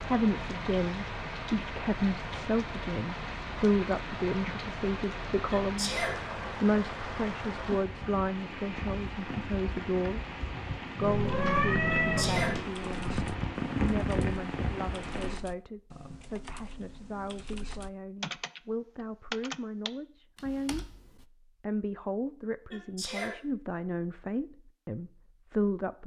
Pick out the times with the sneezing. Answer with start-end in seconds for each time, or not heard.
5.5-6.2, 11.9-12.6, 22.7-23.4.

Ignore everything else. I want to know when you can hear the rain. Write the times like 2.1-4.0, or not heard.
0.0-15.4.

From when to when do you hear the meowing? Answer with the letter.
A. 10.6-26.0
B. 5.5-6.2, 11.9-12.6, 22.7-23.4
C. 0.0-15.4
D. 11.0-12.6
D.